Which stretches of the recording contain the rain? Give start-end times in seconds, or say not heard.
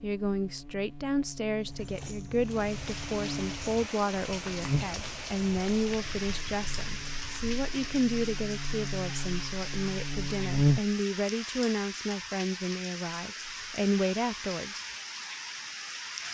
2.4-16.2.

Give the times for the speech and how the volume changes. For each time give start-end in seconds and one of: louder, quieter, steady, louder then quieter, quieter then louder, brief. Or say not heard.
0.0-14.8 steady.